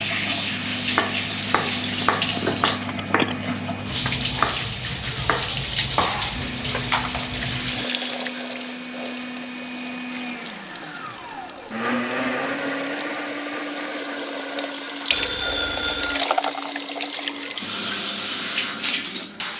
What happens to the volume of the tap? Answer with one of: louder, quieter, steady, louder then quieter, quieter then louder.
quieter then louder.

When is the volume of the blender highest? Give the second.
12 s.